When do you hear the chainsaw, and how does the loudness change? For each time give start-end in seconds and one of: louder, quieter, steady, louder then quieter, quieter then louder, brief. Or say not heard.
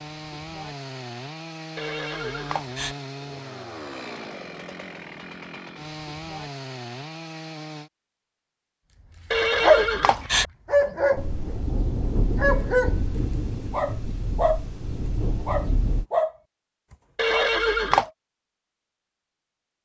0.0-7.9 steady.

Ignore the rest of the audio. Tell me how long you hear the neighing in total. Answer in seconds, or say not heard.
3 s.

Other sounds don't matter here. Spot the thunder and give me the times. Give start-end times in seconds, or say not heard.
11.2-16.1.